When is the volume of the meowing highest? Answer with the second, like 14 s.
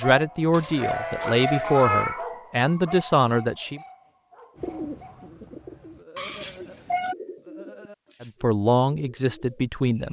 2 s.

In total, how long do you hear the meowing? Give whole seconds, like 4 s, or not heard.
2 s.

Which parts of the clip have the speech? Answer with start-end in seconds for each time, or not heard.
0.0-3.8, 8.2-10.0.